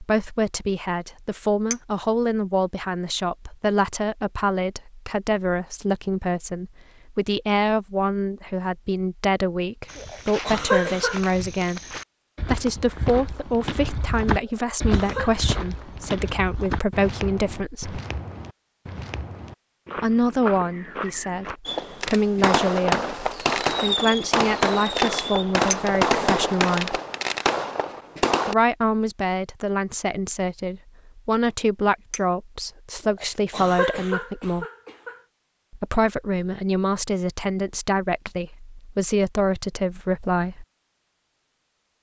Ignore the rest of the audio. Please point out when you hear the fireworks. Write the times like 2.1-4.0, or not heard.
21.6-28.6.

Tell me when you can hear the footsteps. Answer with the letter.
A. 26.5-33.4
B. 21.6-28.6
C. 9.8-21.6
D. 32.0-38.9
C.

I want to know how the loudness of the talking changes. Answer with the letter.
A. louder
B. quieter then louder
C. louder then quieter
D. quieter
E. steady
E.